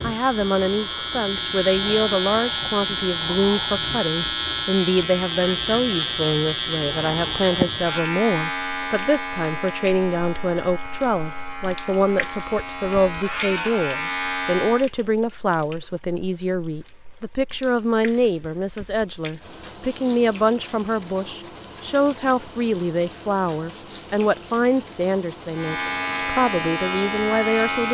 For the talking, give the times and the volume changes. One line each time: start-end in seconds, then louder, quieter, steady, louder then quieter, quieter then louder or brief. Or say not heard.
0.0-27.8 steady.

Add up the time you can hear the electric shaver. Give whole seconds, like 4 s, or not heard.
17 s.